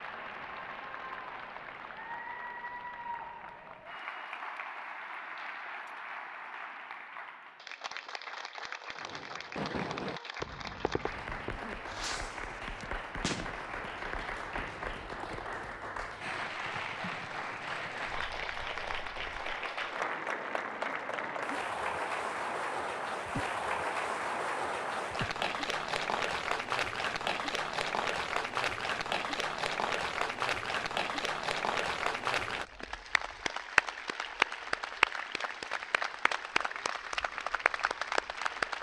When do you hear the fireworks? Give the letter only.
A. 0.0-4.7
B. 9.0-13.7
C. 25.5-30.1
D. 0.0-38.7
B.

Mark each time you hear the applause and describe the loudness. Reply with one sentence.
You can hear the applause from 0.0 to 38.7 s, getting louder.